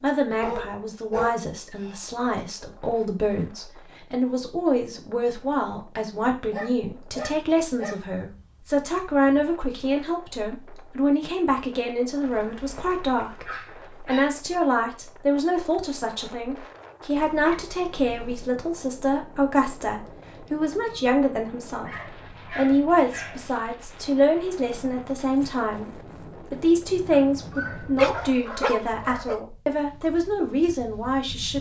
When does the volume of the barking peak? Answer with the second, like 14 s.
28 s.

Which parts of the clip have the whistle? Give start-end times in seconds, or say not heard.
not heard.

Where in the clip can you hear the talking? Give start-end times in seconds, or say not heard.
0.0-21.9, 22.5-31.5.